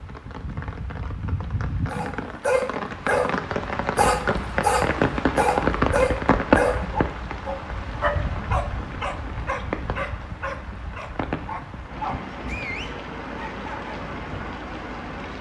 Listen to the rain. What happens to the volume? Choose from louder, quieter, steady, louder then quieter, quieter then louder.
louder then quieter.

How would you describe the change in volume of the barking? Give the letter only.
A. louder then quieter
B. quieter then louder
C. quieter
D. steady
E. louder
C.